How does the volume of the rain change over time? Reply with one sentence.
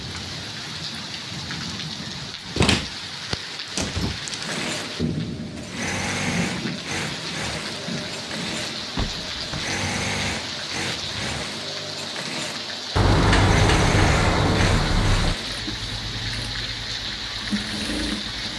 The volume of the rain stays about the same.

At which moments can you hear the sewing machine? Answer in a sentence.
You can hear the sewing machine from 4.5 to 18.5 s.